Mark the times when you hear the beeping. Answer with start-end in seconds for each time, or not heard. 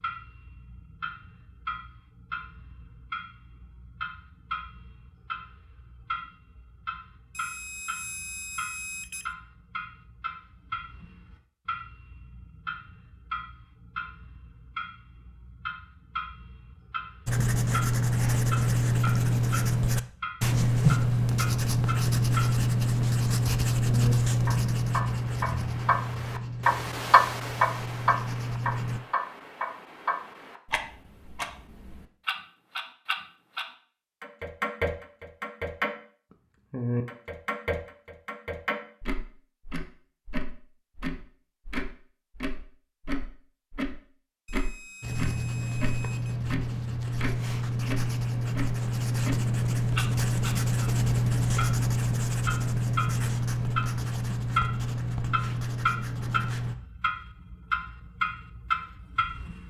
7.3-9.3, 44.5-46.4.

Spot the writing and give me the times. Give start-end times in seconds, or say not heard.
17.2-29.0, 45.0-56.8.